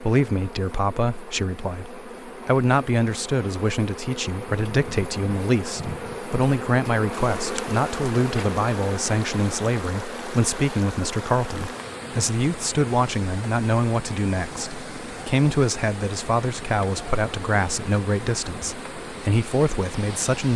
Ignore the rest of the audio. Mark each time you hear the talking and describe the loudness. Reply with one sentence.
The talking can be heard from 0.0 to 20.5 s, at a steady volume.